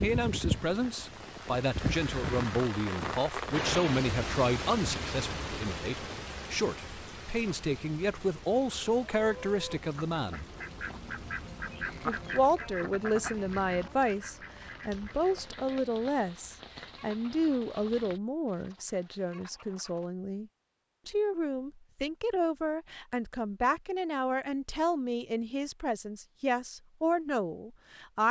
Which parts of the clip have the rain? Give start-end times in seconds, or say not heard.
0.0-18.2.